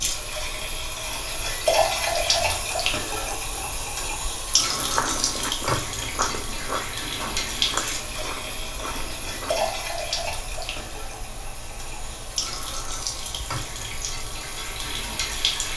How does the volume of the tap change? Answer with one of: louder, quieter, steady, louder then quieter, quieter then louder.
quieter.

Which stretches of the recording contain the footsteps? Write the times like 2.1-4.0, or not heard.
4.7-9.8.